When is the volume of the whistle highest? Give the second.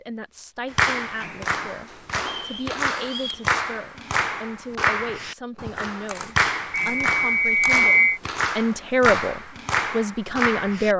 8 s.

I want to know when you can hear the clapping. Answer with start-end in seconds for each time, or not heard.
0.7-10.9.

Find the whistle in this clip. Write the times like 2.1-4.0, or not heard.
2.2-3.5, 6.8-8.2.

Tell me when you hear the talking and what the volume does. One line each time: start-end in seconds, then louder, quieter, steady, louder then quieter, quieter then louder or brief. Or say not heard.
0.0-10.9 louder.